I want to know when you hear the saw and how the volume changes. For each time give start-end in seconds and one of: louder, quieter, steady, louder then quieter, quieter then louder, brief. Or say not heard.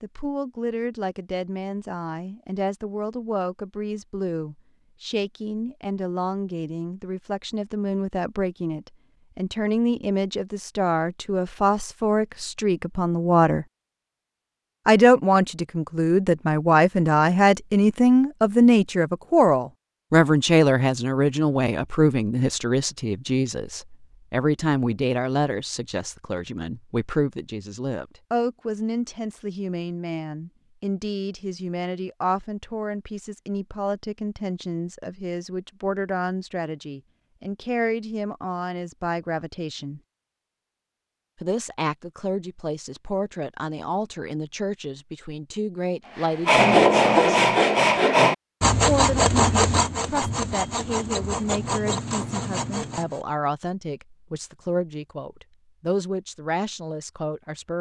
46.1-53.2 quieter.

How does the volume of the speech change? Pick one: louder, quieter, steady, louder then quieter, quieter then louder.
louder then quieter.